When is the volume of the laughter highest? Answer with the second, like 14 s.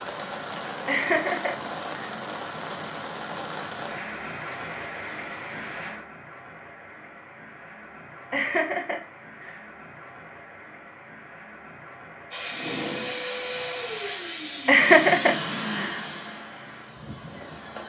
15 s.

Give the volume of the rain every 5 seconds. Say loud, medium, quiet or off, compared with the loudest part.
loud, medium, medium, medium.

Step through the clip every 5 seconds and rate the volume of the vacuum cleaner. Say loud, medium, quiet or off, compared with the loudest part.
off, off, loud, loud.